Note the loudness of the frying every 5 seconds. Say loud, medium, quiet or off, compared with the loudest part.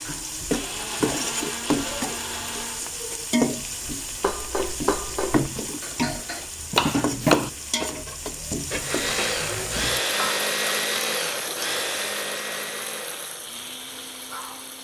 loud, loud, medium.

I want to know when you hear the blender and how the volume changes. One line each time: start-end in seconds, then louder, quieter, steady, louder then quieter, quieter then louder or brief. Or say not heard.
0.0-2.9 brief
8.8-14.7 quieter.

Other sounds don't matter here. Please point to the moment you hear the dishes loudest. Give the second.
7 s.